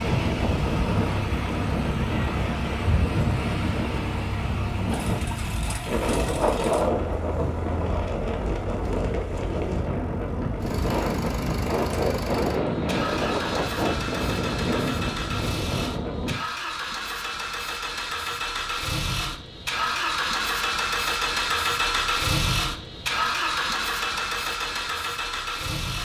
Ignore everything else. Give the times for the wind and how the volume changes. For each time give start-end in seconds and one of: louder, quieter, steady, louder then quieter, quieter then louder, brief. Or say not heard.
0.0-16.4 steady.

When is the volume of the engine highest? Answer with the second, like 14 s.
22 s.